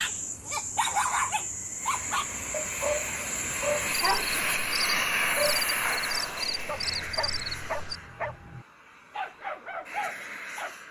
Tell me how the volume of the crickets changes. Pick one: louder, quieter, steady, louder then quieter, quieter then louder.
steady.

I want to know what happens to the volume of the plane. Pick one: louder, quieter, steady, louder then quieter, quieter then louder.
louder then quieter.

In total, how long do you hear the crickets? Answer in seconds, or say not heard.
8 s.